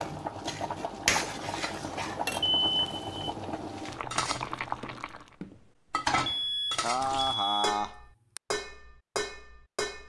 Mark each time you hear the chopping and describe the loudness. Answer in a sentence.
You can't hear the chopping here.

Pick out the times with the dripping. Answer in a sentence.
The dripping can't be heard in this clip.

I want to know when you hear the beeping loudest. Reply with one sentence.
The volume of the beeping peaks at 3 seconds.